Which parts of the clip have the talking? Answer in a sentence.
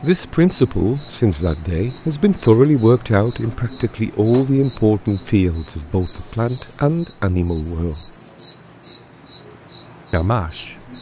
The talking can be heard from 0.0 to 8.0 s and from 10.1 to 10.8 s.